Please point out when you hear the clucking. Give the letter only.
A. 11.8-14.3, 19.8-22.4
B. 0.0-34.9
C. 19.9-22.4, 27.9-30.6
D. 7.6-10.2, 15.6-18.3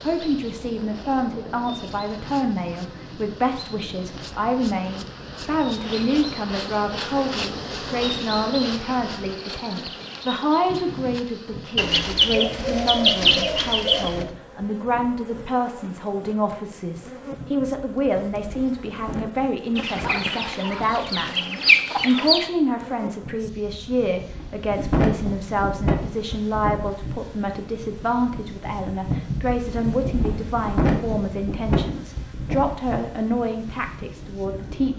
A.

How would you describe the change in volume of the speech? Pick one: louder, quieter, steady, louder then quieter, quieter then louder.
steady.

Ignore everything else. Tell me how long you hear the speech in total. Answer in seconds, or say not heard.
35 s.